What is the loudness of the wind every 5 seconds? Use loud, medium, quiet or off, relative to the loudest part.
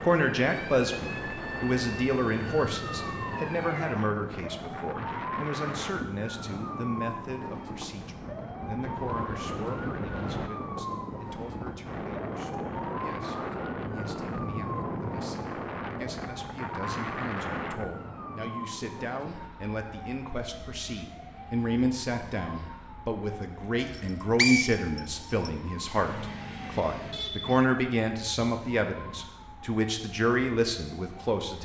loud, loud, loud, loud, off, off, off.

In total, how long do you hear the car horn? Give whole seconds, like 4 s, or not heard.
2 s.